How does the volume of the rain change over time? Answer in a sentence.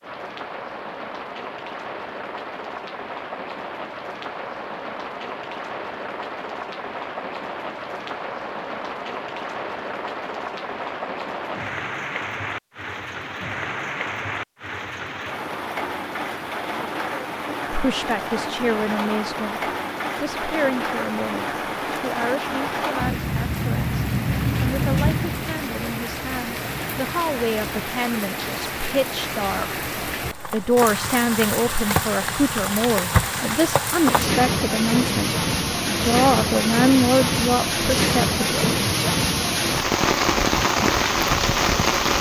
The loudness of the rain goes up.